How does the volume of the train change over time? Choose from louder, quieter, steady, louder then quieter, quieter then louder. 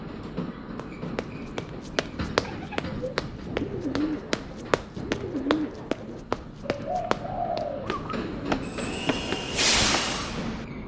quieter then louder.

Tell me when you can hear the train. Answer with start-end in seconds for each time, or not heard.
0.0-10.8.